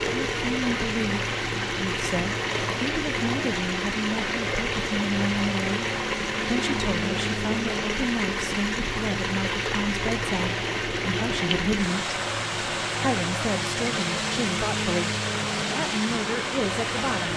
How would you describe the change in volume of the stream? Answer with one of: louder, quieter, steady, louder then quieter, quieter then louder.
steady.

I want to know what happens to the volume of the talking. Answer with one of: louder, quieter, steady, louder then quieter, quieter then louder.
steady.